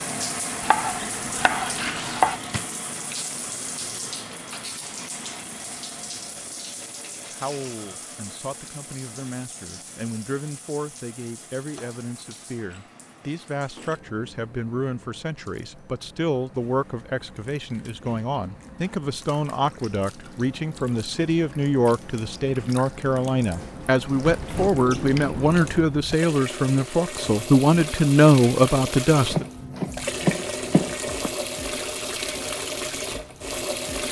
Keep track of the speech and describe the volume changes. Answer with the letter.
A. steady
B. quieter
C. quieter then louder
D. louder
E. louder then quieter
D.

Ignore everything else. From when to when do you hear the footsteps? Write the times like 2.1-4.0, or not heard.
not heard.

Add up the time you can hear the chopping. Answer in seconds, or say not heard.
4 s.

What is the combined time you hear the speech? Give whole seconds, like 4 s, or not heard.
22 s.